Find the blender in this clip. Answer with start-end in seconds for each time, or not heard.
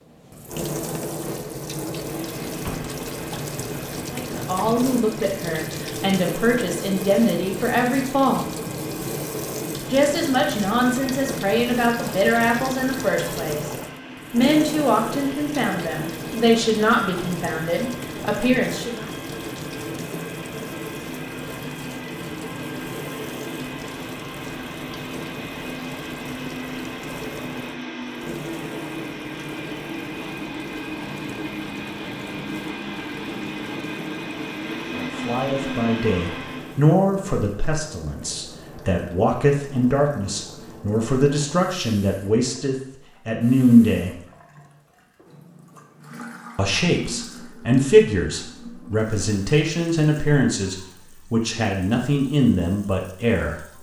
2.0-36.8.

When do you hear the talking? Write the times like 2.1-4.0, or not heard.
4.1-8.6, 9.9-13.7, 14.3-19.1, 35.0-44.1, 46.5-53.7.